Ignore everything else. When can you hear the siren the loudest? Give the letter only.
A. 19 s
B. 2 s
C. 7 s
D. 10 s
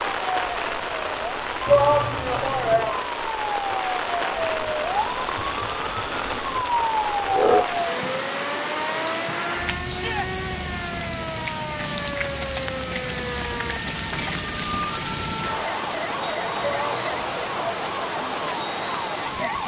C.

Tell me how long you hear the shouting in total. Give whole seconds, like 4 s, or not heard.
3 s.